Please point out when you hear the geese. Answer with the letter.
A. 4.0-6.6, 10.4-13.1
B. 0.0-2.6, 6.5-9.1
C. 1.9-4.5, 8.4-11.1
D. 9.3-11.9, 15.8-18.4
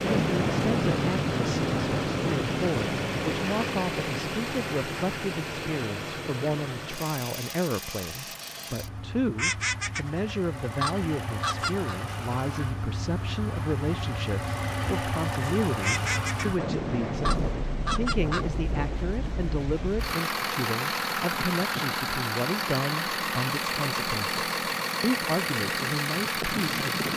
D.